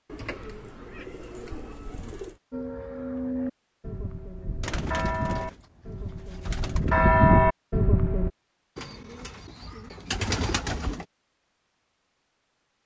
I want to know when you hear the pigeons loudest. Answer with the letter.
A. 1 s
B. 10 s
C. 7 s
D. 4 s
B.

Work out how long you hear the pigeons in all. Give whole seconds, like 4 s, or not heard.
7 s.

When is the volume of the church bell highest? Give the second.
7 s.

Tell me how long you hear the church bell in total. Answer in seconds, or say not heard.
6 s.